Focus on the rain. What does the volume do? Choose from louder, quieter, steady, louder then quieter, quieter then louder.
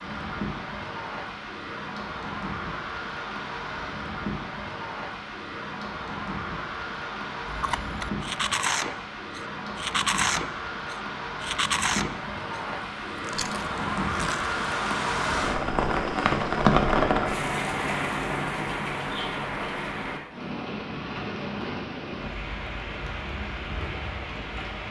louder then quieter.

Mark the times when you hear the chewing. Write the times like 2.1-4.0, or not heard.
7.5-14.6.